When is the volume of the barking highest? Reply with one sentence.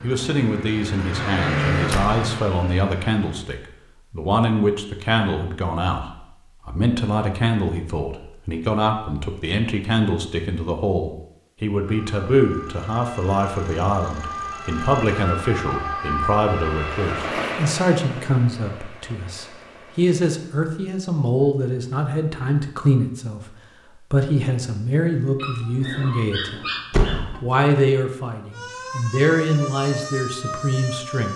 The volume of the barking peaks at 27 seconds.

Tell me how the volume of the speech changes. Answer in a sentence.
The loudness of the speech stays about the same.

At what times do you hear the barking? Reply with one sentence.
You can hear the barking from 25.4 to 27.4 s.